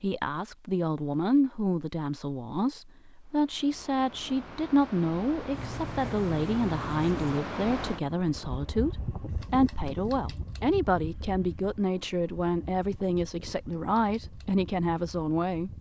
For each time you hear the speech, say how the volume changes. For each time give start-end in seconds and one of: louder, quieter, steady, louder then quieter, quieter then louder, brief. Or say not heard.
0.0-15.7 steady.